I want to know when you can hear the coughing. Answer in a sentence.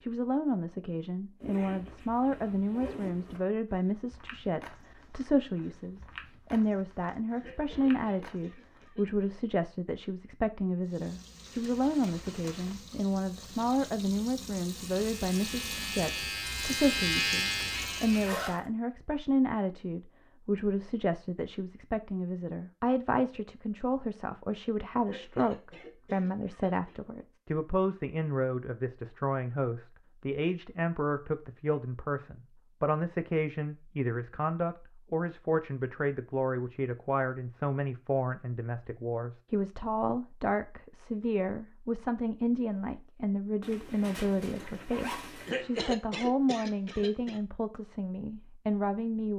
The coughing can be heard from 7.3 to 9.3 s, from 25.0 to 27.0 s and from 45.4 to 47.4 s.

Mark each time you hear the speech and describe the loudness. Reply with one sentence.
You can hear the speech from 0.0 to 49.3 s, at a steady volume.